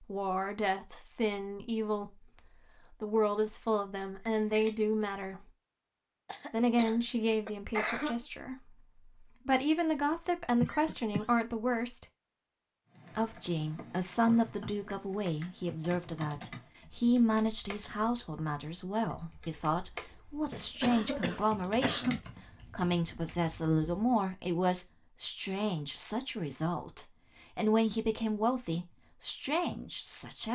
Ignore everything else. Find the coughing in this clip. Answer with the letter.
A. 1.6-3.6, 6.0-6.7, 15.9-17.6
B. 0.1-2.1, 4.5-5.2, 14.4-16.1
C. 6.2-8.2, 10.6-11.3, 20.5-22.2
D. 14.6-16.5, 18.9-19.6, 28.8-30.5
C.